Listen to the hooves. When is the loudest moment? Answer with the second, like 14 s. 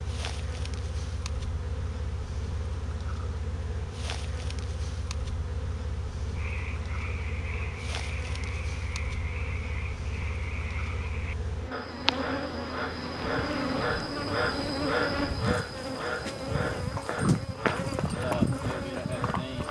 17 s.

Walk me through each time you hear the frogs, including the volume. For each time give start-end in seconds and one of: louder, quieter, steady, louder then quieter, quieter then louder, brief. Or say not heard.
6.3-19.6 louder then quieter.